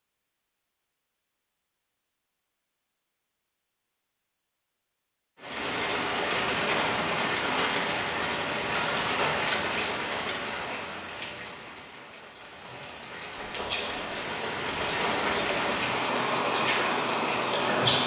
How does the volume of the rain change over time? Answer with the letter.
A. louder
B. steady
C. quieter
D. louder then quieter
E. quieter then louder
E.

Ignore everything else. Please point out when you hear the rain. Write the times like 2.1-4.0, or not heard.
5.3-18.0.